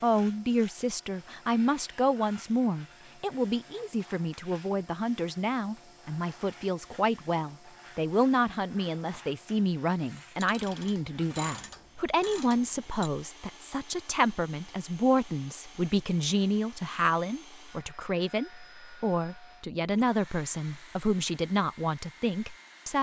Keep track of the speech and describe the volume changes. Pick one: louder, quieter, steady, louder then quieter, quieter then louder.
steady.